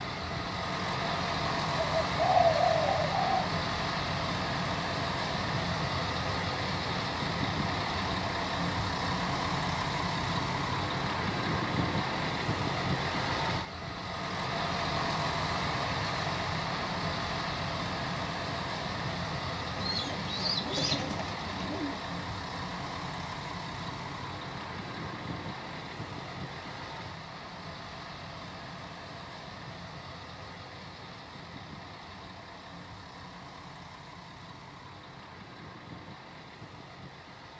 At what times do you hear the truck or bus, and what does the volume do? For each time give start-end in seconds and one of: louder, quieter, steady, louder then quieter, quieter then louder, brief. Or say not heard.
0.0-37.5 quieter.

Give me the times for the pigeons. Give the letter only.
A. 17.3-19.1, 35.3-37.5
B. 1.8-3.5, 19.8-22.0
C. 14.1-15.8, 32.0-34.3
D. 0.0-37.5
B.